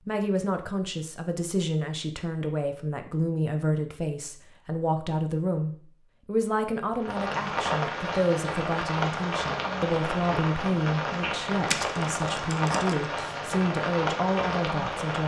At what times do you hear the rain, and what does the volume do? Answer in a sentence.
You can hear the rain from 7.0 to 15.2 s, at a steady volume.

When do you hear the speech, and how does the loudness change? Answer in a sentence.
You can hear the speech from 0.1 to 15.2 s, at a steady volume.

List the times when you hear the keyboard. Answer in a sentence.
You can hear the keyboard from 11.7 to 13.4 s.